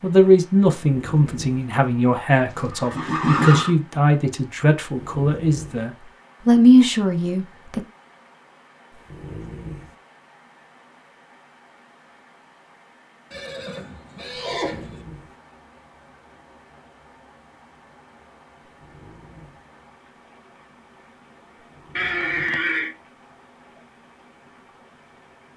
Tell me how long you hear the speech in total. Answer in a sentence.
You can hear the speech for 8 seconds altogether.